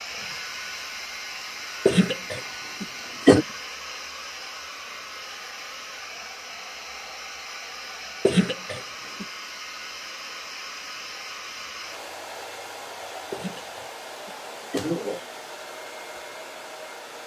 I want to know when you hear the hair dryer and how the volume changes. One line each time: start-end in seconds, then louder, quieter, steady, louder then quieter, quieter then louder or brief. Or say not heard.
0.0-17.2 steady.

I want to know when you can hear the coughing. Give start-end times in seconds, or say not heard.
1.9-3.5, 8.2-9.2, 13.3-15.2.